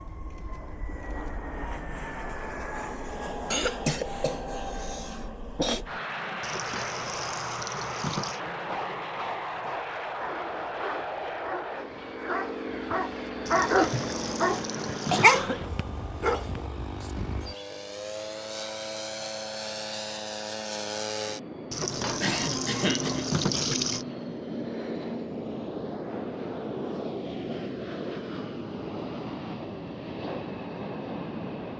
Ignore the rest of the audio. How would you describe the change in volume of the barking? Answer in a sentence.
The volume of the barking goes up.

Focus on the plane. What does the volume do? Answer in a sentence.
The loudness of the plane stays about the same.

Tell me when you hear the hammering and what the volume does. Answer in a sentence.
You can't hear the hammering here.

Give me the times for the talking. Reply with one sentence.
You can't hear the talking here.